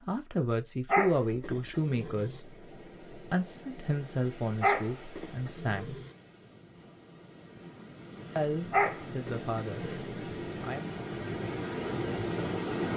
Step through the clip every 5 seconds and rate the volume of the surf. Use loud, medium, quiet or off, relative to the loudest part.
quiet, medium, loud.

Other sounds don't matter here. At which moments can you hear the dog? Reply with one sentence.
The dog can be heard from 0.9 to 2.4 s, from 4.6 to 6.1 s and from 8.7 to 10.2 s.